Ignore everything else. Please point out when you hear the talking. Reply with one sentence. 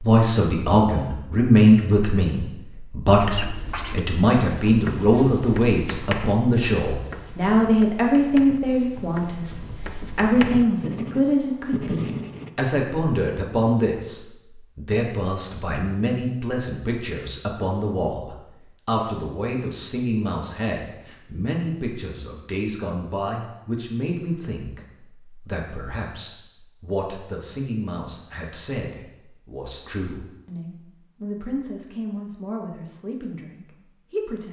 You can hear the talking from 0.0 to 34.4 s.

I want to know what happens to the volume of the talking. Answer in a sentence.
The loudness of the talking goes down.